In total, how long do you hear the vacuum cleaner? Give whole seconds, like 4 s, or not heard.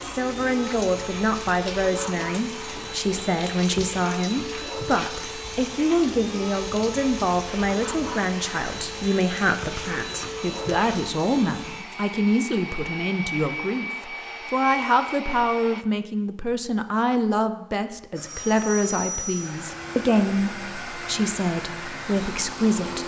21 s.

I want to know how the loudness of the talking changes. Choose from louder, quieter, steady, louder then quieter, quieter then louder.
steady.